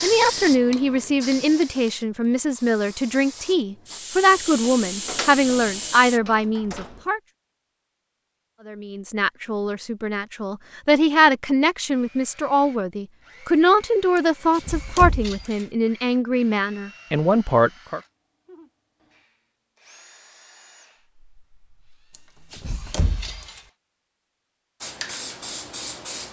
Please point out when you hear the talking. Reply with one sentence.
You can hear the talking from 0.0 to 7.2 s and from 8.7 to 18.0 s.